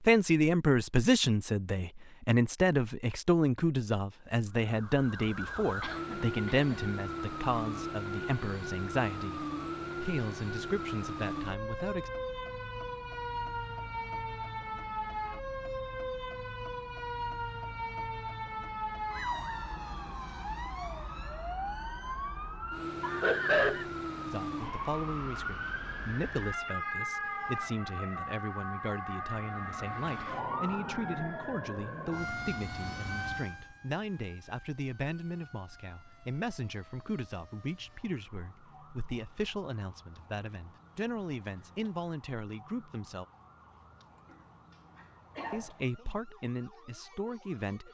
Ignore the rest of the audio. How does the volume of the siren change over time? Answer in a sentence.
The volume of the siren goes down.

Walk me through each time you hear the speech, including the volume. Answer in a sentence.
You can hear the speech from 0.1 to 12.1 s, getting quieter; from 24.2 to 43.2 s, at a steady volume; and briefly from 45.5 to 47.8 s.